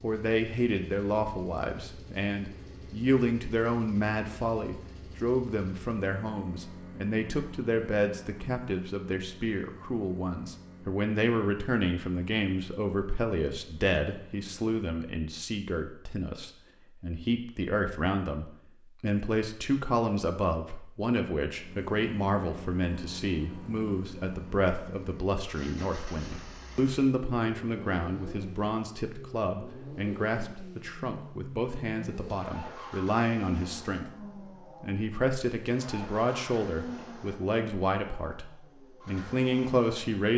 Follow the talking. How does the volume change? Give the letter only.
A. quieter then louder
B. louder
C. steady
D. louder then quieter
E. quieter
C.